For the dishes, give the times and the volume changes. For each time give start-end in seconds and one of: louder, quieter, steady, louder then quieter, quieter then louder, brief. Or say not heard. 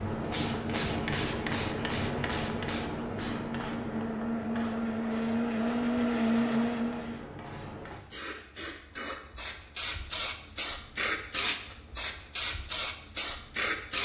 not heard.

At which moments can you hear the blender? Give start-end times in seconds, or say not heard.
0.0-7.2.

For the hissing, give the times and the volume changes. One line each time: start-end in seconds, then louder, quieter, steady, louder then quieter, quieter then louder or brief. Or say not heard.
0.0-14.0 quieter then louder.